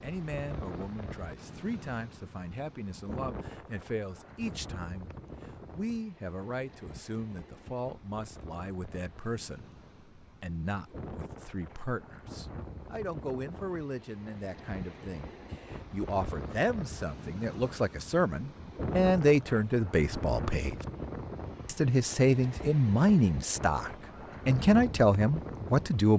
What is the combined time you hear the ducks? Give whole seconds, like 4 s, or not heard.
not heard.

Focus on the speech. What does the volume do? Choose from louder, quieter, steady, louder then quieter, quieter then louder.
louder.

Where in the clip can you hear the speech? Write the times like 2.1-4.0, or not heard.
0.0-5.2, 5.8-20.8, 21.6-26.1.